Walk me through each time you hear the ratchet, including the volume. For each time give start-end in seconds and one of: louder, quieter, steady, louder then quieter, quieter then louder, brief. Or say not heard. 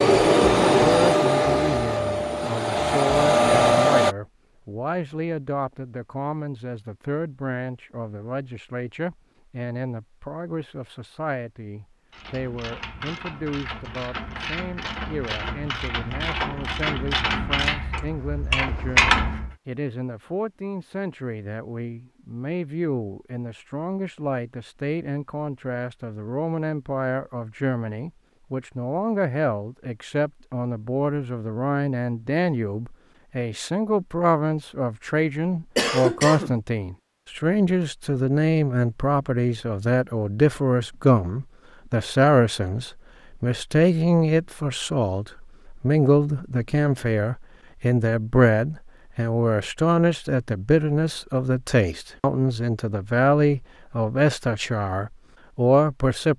12.1-19.6 louder.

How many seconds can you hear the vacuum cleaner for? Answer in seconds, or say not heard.
4 s.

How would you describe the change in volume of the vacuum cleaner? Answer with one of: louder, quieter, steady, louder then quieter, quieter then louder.
quieter then louder.